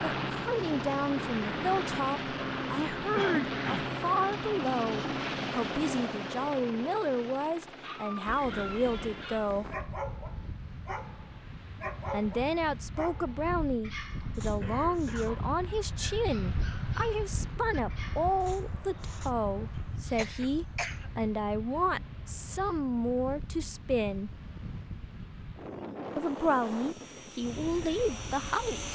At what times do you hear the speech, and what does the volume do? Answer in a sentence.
You can hear the speech from 0.0 to 9.7 s, at a steady volume; from 12.1 to 24.4 s, at a steady volume; and briefly from 26.1 to 28.9 s.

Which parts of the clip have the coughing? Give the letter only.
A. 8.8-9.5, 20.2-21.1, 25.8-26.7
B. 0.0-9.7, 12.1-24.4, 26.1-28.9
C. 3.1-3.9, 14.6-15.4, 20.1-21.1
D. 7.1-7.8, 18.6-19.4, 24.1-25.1
C.